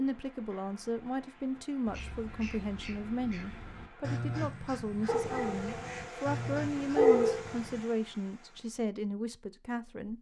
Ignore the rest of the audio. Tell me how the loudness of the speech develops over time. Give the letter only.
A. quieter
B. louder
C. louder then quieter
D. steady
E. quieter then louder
D.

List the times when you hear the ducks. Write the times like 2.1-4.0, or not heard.
1.6-7.8.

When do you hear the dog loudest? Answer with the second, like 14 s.
7 s.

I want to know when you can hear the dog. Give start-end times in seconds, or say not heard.
5.0-7.5.